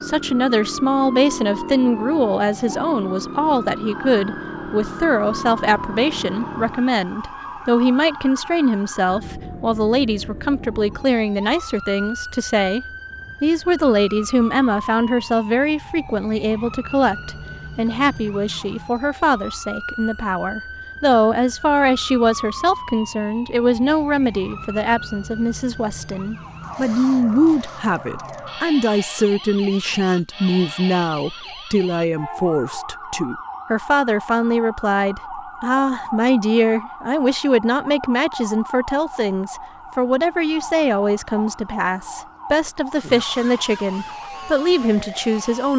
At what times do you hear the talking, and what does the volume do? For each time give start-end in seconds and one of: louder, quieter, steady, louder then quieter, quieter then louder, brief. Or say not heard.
0.0-45.7 steady.